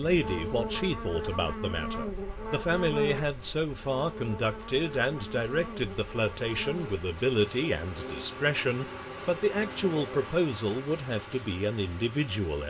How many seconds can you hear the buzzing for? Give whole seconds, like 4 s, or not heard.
10 s.